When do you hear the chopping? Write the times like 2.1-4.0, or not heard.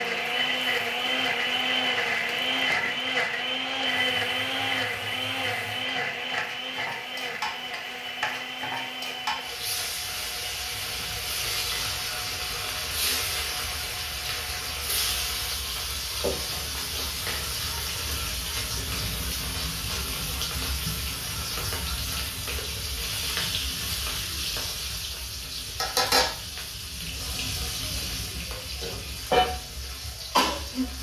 not heard.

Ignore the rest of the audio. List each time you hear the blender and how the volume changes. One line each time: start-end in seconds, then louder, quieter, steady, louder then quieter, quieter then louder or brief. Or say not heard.
0.0-15.6 quieter.